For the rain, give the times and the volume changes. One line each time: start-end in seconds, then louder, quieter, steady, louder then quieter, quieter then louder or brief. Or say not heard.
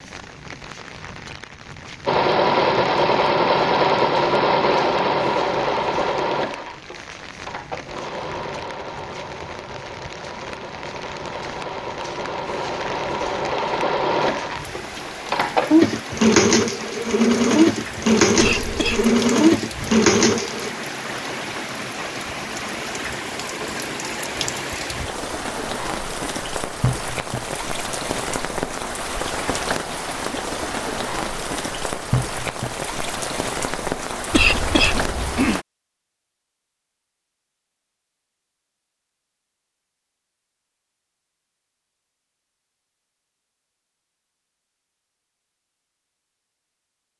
0.0-35.6 louder.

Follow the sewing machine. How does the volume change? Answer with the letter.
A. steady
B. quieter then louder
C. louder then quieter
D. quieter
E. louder
B.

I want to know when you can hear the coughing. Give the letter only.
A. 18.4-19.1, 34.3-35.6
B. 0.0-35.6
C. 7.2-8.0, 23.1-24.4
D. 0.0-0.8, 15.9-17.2
A.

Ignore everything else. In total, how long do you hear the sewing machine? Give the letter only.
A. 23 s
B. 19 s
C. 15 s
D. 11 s
B.